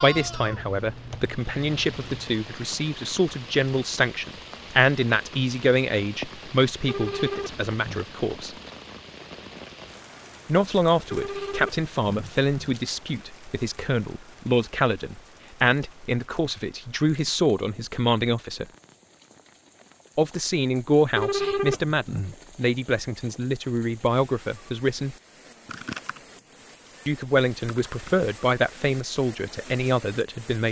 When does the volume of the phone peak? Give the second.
22 s.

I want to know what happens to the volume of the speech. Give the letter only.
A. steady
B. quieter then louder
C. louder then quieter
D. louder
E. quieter
A.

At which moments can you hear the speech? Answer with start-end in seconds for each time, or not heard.
0.0-8.6, 10.4-18.6, 20.1-25.1, 27.1-30.6.